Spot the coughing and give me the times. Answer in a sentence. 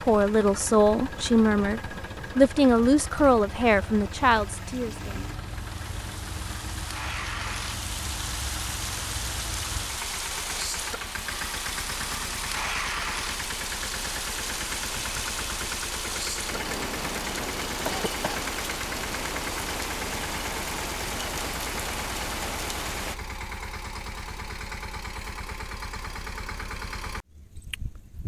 You can hear the coughing from 17.9 to 18.4 s.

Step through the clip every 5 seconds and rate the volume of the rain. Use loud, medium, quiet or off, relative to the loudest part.
quiet, loud, loud, loud, loud, off.